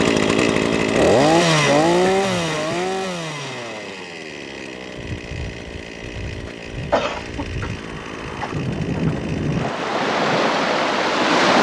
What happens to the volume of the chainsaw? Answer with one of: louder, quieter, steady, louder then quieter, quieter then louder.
quieter.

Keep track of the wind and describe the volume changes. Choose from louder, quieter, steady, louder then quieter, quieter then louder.
louder.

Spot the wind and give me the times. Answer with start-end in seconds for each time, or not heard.
5.0-11.5.